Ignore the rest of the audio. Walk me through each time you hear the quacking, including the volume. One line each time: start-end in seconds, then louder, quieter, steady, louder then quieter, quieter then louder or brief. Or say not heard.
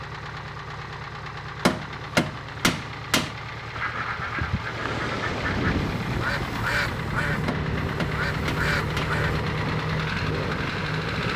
3.8-9.4 steady.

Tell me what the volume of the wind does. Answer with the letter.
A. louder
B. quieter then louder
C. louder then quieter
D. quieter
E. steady
D.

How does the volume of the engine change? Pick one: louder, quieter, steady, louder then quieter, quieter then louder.
louder.